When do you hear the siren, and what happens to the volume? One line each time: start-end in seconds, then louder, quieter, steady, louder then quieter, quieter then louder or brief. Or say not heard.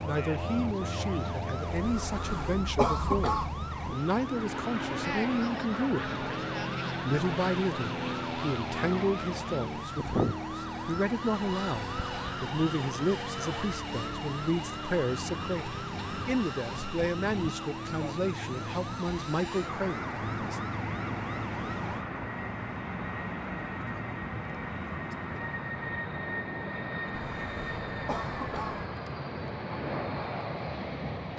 0.0-22.1 steady.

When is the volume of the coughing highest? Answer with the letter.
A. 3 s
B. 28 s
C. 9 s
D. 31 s
A.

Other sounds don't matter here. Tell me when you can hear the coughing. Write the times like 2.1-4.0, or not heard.
1.9-3.5, 27.1-28.9.